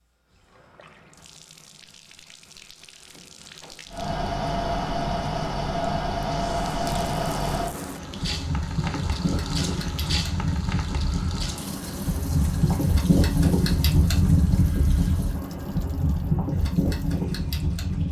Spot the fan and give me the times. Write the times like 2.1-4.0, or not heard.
3.9-18.0.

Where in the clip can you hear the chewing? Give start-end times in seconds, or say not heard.
not heard.